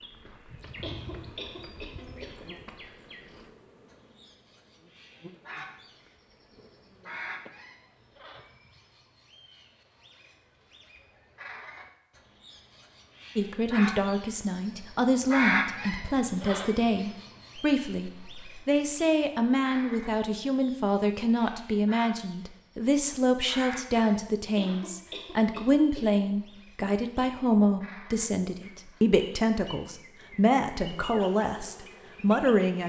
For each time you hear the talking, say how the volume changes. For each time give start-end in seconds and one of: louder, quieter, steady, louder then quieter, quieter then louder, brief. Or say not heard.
13.3-32.8 steady.